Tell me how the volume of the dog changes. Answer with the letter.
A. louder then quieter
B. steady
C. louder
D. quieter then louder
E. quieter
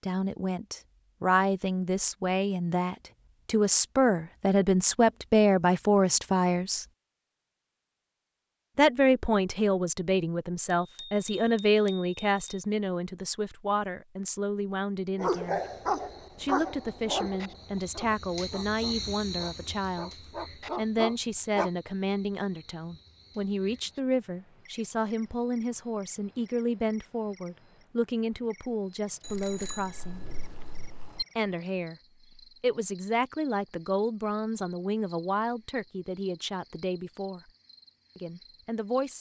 D.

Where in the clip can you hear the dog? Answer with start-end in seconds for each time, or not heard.
15.2-21.7.